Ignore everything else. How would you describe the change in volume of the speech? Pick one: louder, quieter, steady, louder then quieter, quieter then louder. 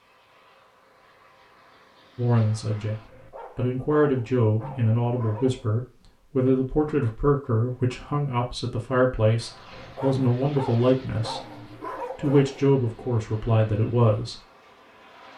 steady.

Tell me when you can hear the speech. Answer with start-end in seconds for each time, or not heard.
2.1-14.4.